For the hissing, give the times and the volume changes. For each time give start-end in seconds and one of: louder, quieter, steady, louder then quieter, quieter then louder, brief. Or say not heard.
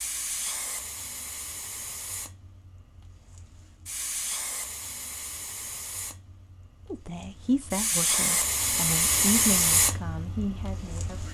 0.0-11.2 louder.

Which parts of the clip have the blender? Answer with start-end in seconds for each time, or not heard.
not heard.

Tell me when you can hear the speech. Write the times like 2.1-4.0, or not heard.
6.9-11.2.